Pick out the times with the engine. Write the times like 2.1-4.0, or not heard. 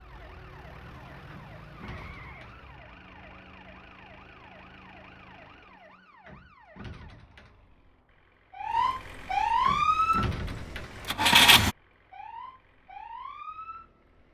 10.1-11.8.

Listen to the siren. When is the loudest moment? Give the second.
10 s.